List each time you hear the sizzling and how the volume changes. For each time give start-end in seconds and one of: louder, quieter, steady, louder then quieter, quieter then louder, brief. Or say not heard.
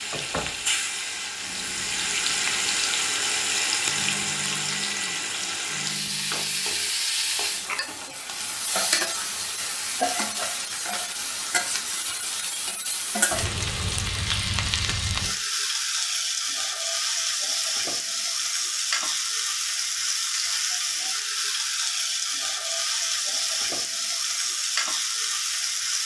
0.0-26.0 steady.